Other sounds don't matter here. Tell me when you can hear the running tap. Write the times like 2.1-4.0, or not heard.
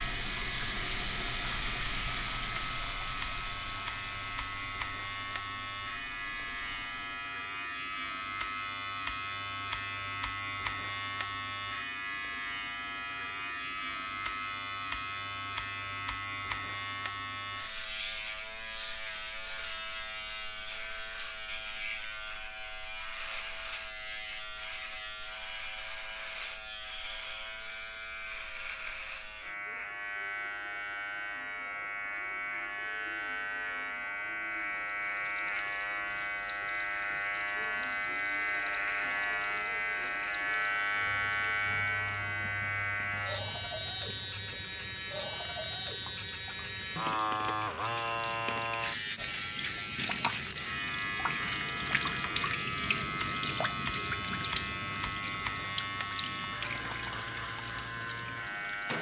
0.0-7.3, 34.9-58.9.